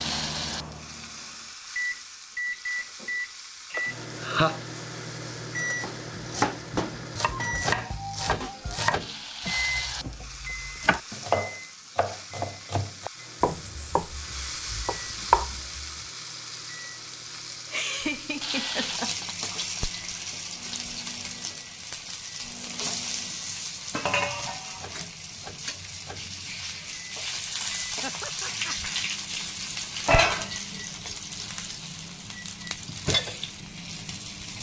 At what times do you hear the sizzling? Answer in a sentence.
You can hear the sizzling from 0.0 to 34.5 s.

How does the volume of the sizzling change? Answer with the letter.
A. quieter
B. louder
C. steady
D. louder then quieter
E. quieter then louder
B.